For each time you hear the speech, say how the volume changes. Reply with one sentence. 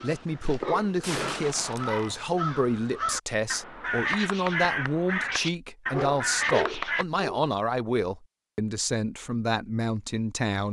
You can hear the speech from 0.0 to 10.6 s, at a steady volume.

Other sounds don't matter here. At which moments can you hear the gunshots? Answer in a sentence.
The gunshots can be heard from 1.0 to 2.2 s.